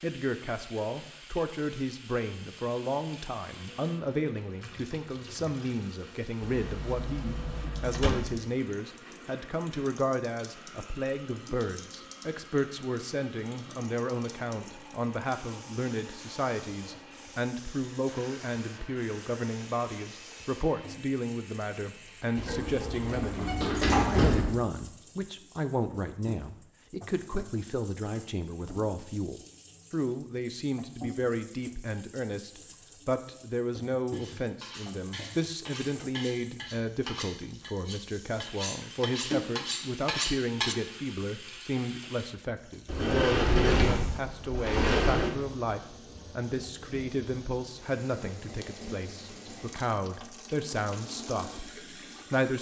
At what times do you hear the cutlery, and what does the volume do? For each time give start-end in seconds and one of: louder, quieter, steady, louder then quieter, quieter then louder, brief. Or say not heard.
34.1-40.8 louder.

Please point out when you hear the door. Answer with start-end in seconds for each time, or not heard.
6.4-8.4, 22.4-24.6, 42.9-45.3.